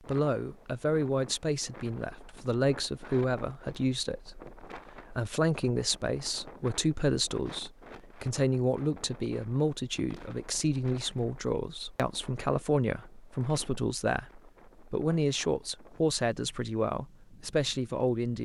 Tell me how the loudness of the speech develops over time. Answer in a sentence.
The volume of the speech stays about the same.